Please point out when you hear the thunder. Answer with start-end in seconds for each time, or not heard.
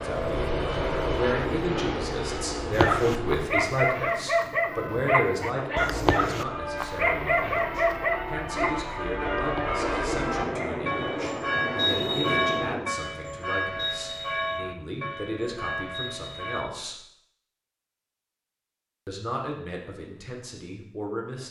9.7-12.9.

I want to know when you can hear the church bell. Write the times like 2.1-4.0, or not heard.
4.7-16.6.